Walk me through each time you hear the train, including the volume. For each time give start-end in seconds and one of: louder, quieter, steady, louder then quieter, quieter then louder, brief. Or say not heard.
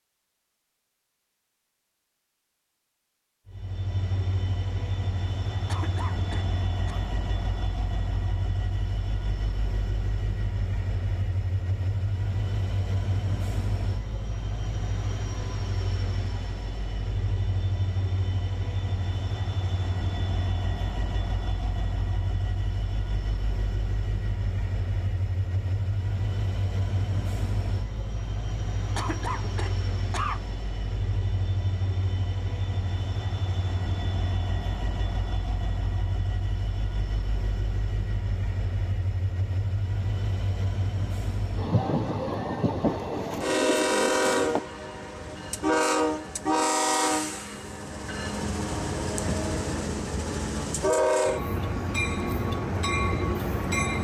3.5-53.9 louder.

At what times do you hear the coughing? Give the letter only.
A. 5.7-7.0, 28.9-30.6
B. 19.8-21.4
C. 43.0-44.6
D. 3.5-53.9
A.